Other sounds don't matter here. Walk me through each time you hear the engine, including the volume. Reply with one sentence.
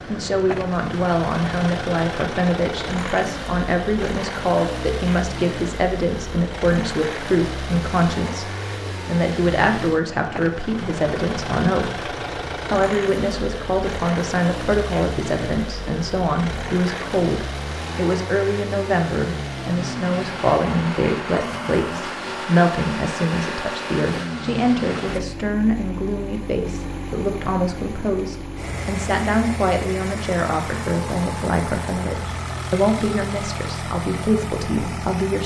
You can hear the engine from 0.0 to 35.4 s, at a steady volume.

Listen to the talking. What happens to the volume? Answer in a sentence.
The loudness of the talking stays about the same.